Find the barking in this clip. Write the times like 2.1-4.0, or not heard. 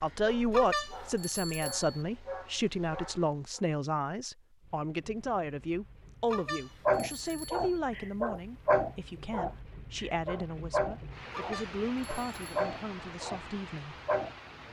0.0-3.6, 6.8-13.4, 14.1-14.6.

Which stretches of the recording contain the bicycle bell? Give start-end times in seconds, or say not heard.
0.5-2.0, 6.3-7.8, 11.3-12.7.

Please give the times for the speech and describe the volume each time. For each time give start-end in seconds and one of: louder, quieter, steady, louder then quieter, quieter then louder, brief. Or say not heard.
0.0-14.0 quieter.